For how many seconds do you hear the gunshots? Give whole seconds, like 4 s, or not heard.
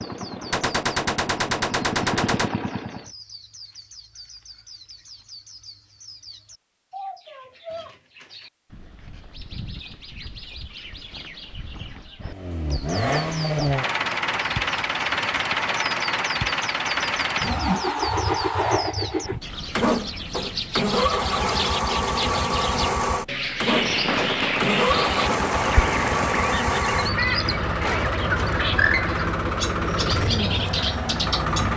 5 s.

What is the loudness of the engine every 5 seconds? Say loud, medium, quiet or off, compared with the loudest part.
medium, off, loud, loud, loud, loud, loud.